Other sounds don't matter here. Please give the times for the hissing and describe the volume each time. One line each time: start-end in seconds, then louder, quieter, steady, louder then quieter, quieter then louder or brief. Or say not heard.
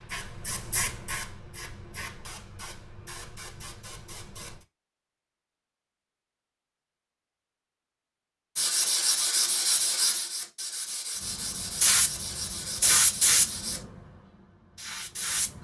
0.0-4.7 quieter
11.3-15.5 quieter then louder.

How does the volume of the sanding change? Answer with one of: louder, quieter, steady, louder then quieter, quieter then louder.
quieter.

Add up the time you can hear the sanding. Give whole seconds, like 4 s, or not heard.
5 s.